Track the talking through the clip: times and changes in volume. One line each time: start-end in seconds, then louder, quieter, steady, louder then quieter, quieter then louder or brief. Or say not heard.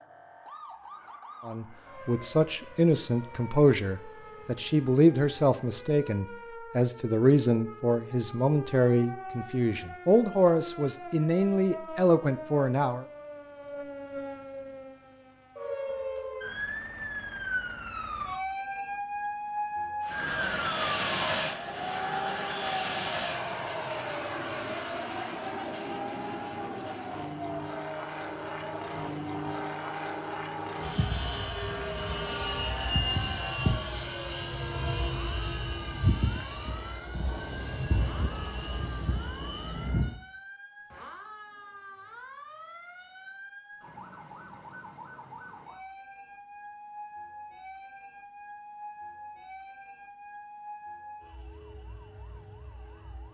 1.4-13.1 steady.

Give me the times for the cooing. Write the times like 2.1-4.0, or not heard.
not heard.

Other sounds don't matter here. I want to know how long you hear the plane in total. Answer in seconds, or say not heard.
20 s.